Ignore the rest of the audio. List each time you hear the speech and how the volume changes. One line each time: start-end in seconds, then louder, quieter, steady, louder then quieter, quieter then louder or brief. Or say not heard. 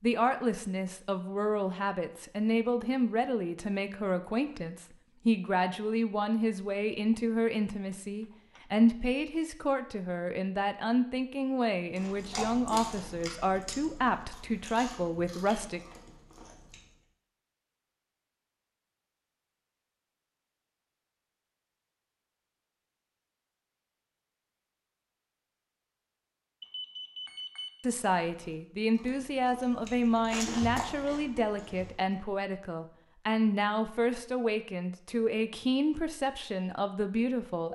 0.0-15.8 steady
27.8-37.6 steady.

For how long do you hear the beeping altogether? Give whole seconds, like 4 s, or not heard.
2 s.